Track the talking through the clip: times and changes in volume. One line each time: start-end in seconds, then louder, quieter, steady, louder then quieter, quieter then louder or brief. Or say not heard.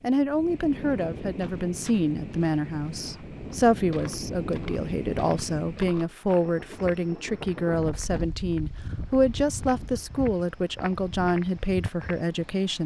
0.0-12.8 steady.